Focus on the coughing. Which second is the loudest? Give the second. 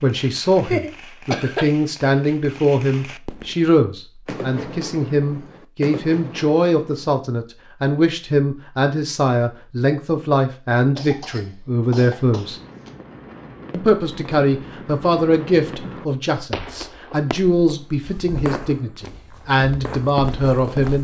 1 s.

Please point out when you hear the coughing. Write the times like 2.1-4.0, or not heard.
0.5-1.6, 10.9-12.9.